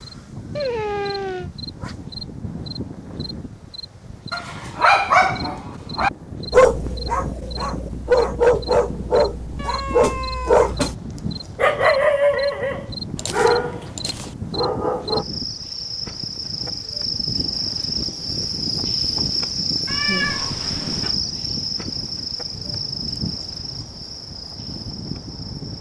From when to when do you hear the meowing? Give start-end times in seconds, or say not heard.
0.6-1.5, 9.6-11.6, 19.9-21.1.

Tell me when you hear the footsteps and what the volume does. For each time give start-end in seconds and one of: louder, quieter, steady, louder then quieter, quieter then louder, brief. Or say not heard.
not heard.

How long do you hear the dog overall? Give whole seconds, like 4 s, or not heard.
10 s.